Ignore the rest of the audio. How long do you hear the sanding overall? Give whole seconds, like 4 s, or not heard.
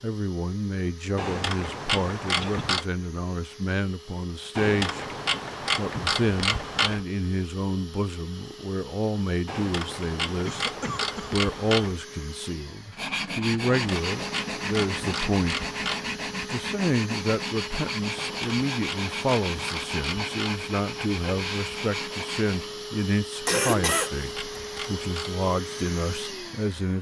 10 s.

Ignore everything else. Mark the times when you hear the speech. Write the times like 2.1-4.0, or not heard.
0.0-5.0, 5.8-15.7, 16.4-26.9.